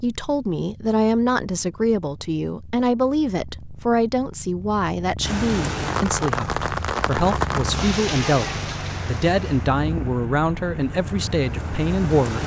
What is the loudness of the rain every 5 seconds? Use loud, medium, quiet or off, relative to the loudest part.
off, loud, medium.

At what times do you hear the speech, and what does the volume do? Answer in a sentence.
The speech can be heard from 0.0 to 12.4 s, at a steady volume.